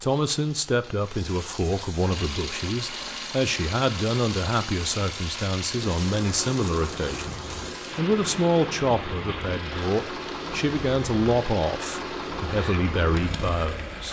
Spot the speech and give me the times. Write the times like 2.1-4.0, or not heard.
0.0-14.0.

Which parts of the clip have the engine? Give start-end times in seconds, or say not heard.
2.1-14.0.